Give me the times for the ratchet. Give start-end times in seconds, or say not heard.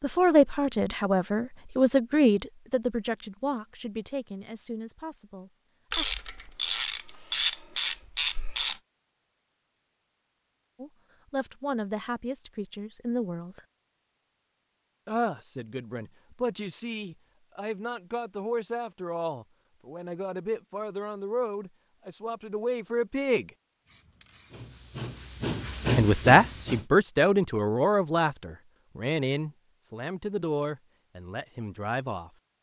5.9-8.8.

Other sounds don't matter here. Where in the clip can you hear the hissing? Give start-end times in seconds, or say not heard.
23.9-26.9.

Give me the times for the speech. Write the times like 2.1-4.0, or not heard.
0.0-6.0, 10.8-13.6, 15.1-23.5, 25.9-32.3.